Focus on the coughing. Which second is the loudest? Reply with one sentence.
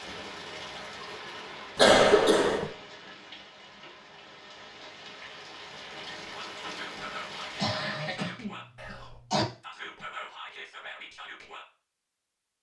The volume of the coughing peaks at 2 seconds.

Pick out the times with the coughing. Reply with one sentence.
You can hear the coughing from 1.8 to 2.7 s and from 7.5 to 9.4 s.